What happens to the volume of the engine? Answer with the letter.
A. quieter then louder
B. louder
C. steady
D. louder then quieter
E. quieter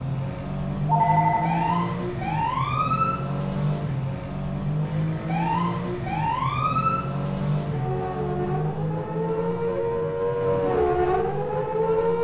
E.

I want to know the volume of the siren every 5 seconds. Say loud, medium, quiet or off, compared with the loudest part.
medium, medium, loud.